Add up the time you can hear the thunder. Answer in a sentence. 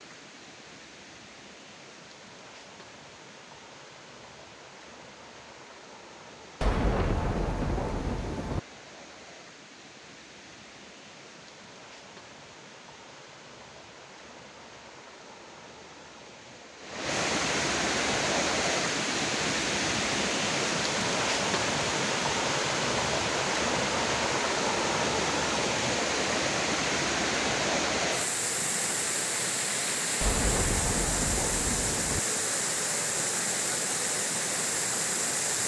You can hear the thunder for 4 seconds altogether.